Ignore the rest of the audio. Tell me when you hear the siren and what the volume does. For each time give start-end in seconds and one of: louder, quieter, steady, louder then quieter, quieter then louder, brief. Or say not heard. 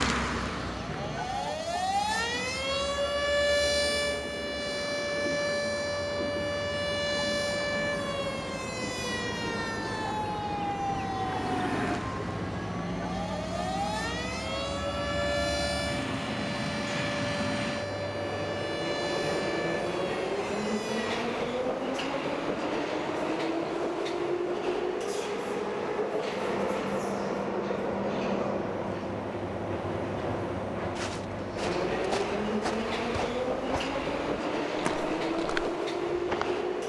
0.0-21.2 quieter.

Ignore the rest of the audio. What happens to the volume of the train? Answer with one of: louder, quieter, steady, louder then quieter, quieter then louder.
louder.